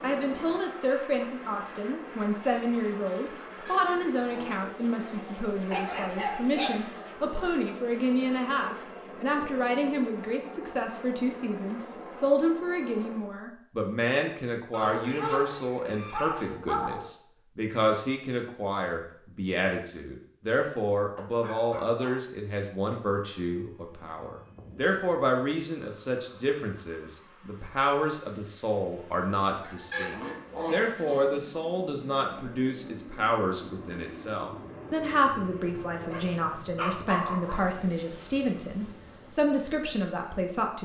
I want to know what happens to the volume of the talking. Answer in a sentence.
The volume of the talking stays about the same.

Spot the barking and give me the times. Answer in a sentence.
You can hear the barking from 5.7 to 6.8 s, from 14.8 to 17.1 s, from 21.1 to 23.0 s and from 36.0 to 37.7 s.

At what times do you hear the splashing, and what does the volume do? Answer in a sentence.
The splashing can't be heard in this clip.